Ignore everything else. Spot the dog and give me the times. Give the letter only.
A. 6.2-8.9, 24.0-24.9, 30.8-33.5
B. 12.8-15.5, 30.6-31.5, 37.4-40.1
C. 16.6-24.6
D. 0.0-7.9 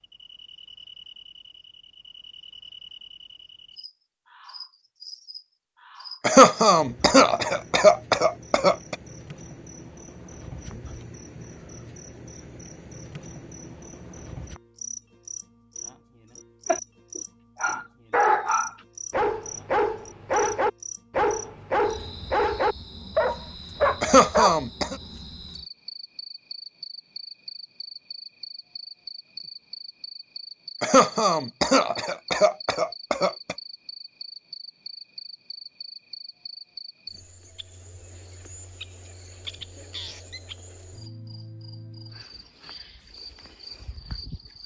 C.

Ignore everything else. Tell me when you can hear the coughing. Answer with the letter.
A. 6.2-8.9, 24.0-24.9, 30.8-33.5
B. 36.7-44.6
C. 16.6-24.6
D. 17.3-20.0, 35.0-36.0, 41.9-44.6
A.